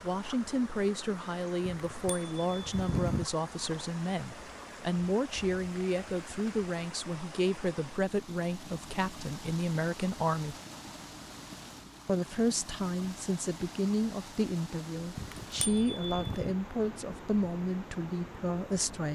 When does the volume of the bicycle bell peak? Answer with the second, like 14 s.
3 s.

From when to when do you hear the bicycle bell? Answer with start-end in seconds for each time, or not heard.
1.7-3.2, 15.2-16.6.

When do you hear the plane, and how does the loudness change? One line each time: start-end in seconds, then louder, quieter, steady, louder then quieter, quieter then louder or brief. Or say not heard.
not heard.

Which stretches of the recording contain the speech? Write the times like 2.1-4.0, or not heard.
0.0-10.6, 12.1-19.1.